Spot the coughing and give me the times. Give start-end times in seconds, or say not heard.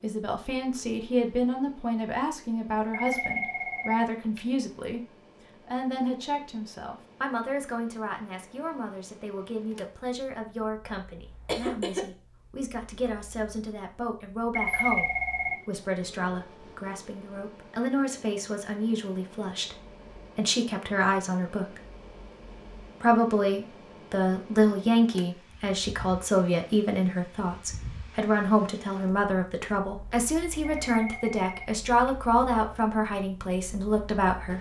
11.4-12.1.